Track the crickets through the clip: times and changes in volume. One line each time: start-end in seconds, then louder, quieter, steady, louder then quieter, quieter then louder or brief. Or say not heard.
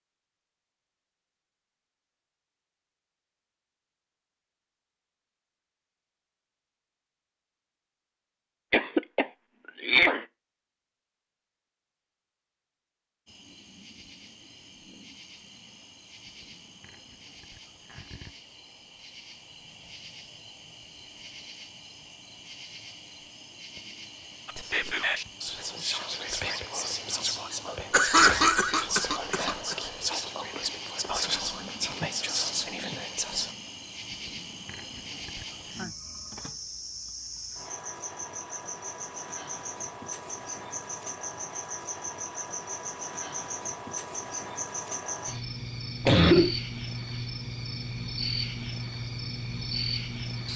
13.2-50.5 louder.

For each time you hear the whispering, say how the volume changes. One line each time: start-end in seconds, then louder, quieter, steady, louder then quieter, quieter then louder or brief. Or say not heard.
24.4-33.5 steady.